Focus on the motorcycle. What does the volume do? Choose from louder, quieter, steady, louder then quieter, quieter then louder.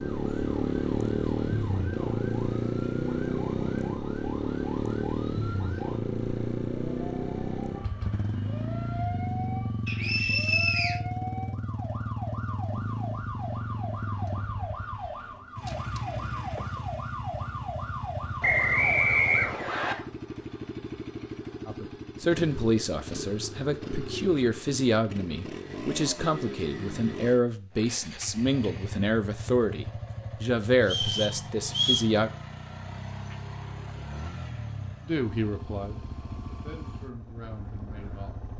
quieter.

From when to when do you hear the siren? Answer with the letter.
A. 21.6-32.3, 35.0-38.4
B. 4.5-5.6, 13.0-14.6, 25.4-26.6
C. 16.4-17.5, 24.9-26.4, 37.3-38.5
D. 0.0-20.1
D.